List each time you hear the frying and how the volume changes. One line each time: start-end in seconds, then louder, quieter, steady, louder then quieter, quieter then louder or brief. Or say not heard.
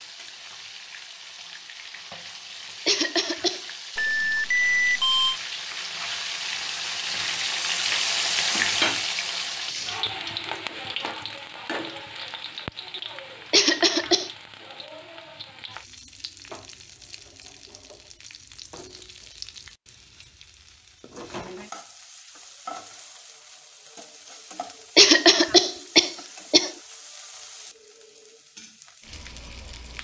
0.0-29.9 louder then quieter.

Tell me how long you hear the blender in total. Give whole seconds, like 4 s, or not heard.
not heard.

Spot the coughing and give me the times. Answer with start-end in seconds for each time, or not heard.
2.9-3.6, 13.5-14.3, 24.9-26.7.